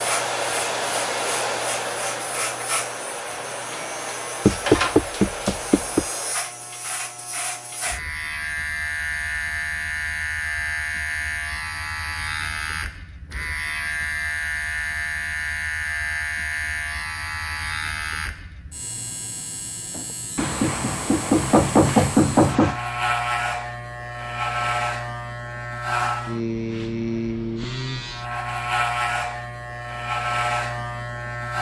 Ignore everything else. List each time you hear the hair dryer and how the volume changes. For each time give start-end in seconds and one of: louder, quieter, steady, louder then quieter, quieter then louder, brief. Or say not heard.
0.0-6.3 quieter.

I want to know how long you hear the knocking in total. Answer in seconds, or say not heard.
4 s.